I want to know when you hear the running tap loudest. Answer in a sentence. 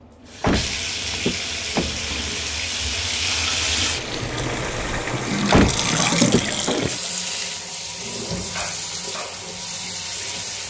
The volume of the running tap peaks at 6 seconds.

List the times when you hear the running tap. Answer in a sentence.
You can hear the running tap from 0.0 to 10.6 s.